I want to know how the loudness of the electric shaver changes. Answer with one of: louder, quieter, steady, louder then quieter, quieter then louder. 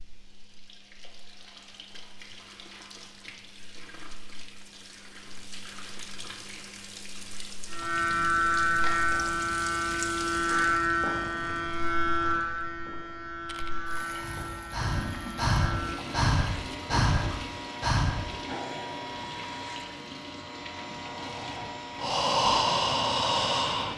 quieter.